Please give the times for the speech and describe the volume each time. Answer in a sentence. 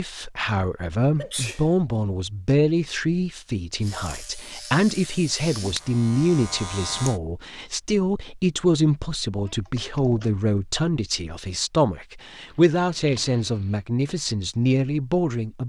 You can hear the speech from 0.0 to 15.6 s, at a steady volume.